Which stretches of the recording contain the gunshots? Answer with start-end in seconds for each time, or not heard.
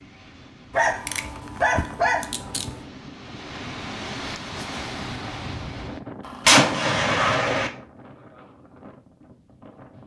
6.5-7.7.